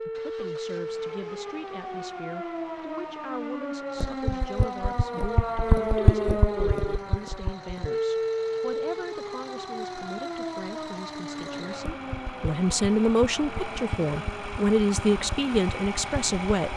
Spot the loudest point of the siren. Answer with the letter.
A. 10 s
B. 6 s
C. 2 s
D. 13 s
B.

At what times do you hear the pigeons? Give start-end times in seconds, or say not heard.
not heard.